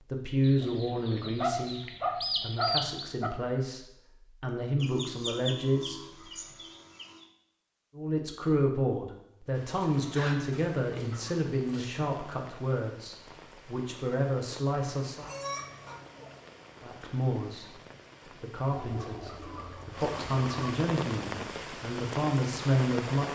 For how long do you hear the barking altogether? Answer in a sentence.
You can hear the barking for 2 seconds altogether.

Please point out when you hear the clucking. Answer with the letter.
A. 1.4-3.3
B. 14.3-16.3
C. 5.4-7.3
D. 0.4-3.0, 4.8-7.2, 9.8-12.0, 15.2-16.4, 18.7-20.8
D.